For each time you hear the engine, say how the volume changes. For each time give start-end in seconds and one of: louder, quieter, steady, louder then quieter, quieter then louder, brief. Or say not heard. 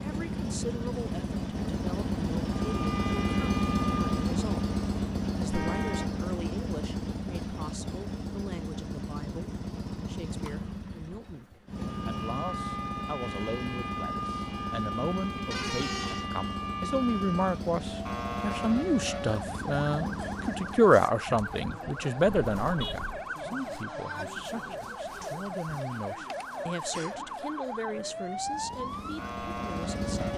0.0-20.9 quieter
28.3-30.3 brief.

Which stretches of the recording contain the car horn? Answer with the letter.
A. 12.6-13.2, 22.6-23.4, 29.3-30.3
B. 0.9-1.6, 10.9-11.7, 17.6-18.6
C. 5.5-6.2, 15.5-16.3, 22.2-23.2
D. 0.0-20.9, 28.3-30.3
C.